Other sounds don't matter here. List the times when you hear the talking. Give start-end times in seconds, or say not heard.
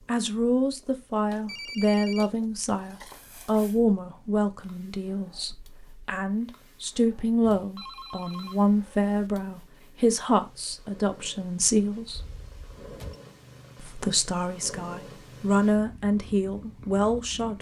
0.1-12.2, 13.8-17.5.